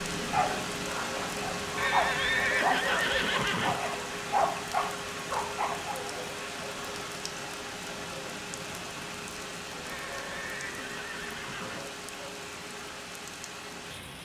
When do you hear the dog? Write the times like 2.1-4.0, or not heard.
0.2-6.0.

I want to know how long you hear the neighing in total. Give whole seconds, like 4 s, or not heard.
4 s.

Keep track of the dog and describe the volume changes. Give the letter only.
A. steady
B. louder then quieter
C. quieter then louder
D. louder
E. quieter
D.